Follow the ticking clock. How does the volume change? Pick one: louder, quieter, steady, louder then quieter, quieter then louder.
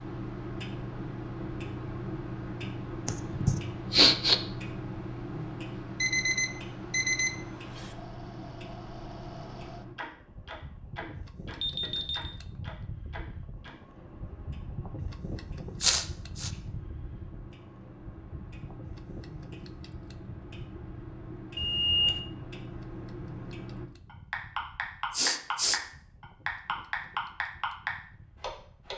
quieter then louder.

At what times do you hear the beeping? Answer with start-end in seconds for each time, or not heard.
6.0-7.9, 11.6-12.3, 21.6-22.2.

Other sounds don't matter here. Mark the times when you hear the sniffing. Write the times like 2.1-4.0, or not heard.
3.0-4.3, 15.8-16.5, 25.1-25.8.